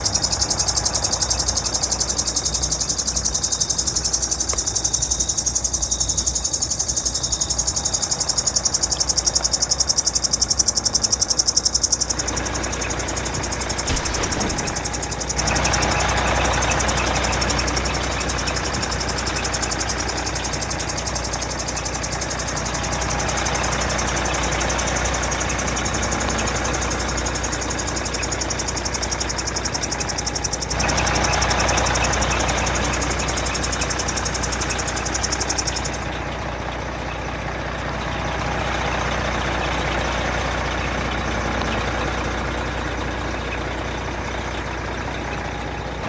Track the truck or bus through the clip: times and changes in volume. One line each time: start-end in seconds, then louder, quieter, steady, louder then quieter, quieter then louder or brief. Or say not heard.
0.0-46.0 louder.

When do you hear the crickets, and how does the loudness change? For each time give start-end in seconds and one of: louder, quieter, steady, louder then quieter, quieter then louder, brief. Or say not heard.
0.0-36.0 quieter.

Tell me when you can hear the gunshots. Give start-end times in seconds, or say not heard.
13.3-14.7.